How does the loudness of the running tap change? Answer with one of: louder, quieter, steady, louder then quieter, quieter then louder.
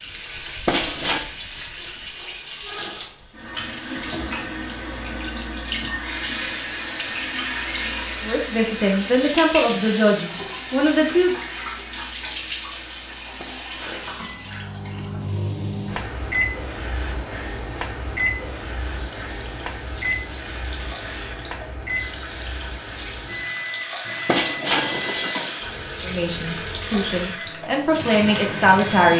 quieter then louder.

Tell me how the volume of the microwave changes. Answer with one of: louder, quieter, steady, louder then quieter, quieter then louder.
quieter.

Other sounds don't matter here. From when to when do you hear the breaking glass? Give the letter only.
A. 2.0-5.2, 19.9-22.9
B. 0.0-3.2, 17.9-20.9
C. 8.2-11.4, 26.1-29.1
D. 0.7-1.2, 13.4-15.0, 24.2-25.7
D.